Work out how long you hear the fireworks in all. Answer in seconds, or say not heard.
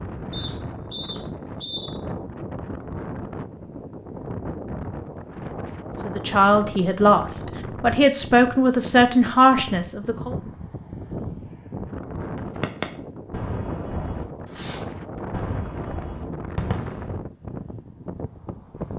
5 s.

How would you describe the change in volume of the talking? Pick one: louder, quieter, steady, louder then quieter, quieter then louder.
quieter then louder.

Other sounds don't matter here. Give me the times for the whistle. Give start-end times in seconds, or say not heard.
0.3-1.9.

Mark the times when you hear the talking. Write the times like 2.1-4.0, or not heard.
6.0-10.3.